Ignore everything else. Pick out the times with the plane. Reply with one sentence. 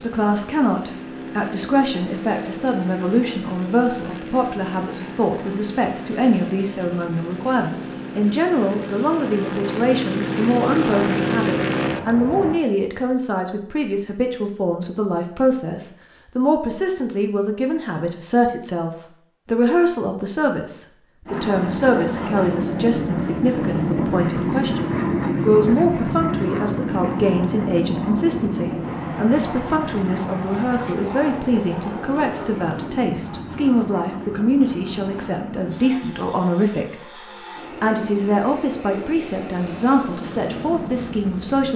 You can hear the plane from 0.0 to 12.6 s and from 21.2 to 41.7 s.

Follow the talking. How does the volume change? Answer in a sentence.
The loudness of the talking stays about the same.